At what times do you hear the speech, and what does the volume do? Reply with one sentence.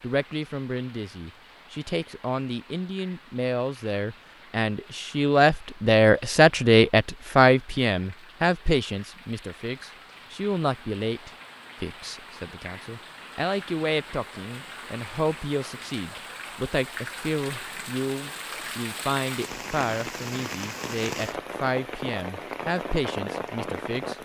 The speech can be heard from 0.0 to 24.1 s, getting louder then quieter.